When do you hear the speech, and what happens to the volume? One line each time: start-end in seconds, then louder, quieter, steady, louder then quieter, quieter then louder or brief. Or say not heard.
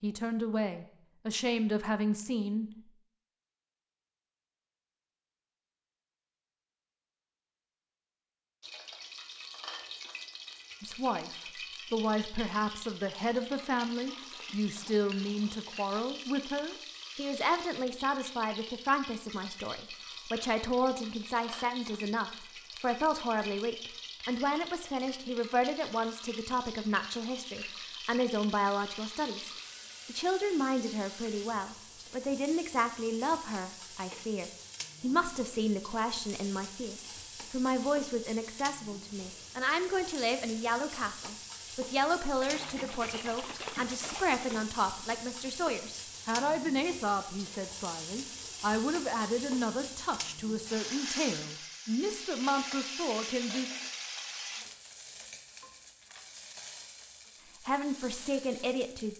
0.0-2.7 brief
10.8-53.7 steady
57.6-59.1 brief.